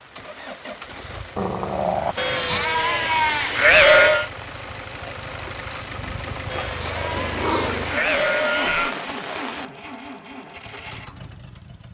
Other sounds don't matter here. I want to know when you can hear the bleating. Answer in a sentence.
You can hear the bleating from 2.1 to 4.3 s and from 6.5 to 8.9 s.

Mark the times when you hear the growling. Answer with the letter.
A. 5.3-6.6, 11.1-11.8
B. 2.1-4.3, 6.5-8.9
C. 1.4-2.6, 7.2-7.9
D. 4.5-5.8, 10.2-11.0
C.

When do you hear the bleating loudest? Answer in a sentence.
The volume of the bleating peaks at 4 seconds.